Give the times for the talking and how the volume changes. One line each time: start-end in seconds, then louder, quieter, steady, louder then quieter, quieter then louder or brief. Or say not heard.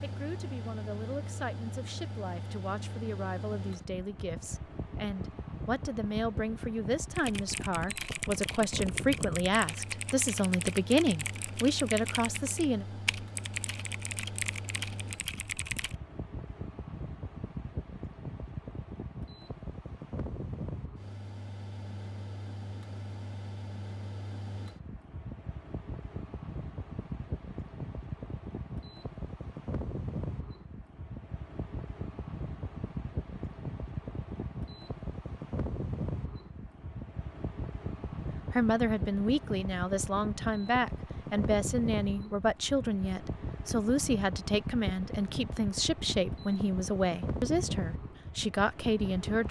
0.0-12.8 louder
38.5-49.4 steady.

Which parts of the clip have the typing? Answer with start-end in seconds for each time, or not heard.
7.2-15.9.